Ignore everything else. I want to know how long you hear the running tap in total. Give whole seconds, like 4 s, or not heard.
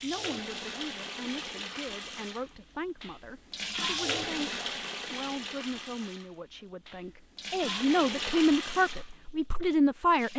10 s.